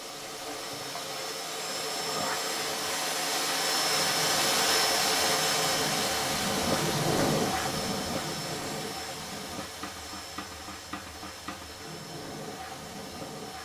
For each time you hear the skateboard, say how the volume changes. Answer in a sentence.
You can hear the skateboard from 0.0 to 13.5 s, getting louder then quieter.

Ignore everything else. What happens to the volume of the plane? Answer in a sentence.
The loudness of the plane goes up, then down.